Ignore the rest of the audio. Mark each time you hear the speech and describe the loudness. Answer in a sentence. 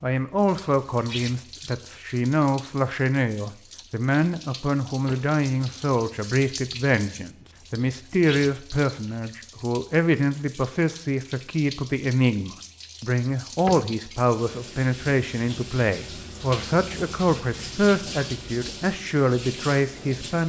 You can hear the speech from 0.0 to 20.4 s, at a steady volume.